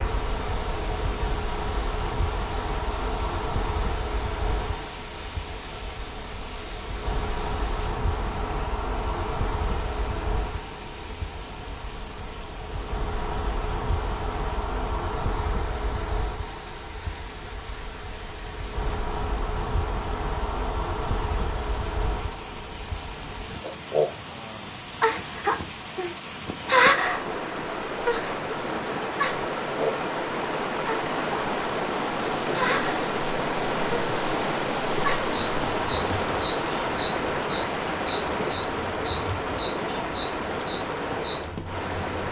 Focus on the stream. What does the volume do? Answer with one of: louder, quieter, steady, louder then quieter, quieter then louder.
louder.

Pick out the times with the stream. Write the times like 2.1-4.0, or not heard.
0.0-42.2.